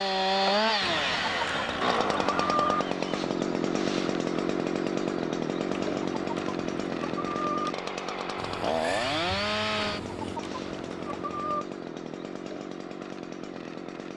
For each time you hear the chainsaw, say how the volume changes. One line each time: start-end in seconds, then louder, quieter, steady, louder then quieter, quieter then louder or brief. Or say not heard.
0.0-14.1 quieter.